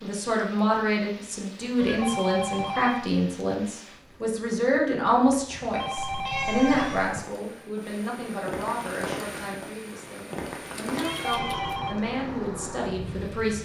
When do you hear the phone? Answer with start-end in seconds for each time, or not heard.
1.8-3.0, 5.5-7.2, 11.0-11.9.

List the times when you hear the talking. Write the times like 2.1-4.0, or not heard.
0.0-13.6.